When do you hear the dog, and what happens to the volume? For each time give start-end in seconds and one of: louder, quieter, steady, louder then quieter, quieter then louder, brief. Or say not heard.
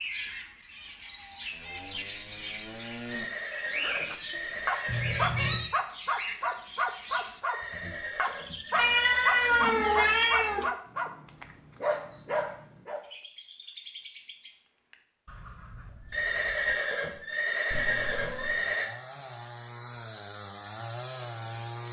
3.8-13.1 steady.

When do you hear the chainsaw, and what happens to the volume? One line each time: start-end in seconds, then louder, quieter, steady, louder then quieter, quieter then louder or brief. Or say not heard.
1.5-3.3 brief
17.8-21.8 louder.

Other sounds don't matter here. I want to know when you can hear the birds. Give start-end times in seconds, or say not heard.
0.0-16.8.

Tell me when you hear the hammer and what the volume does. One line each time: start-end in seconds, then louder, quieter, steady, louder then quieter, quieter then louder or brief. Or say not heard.
not heard.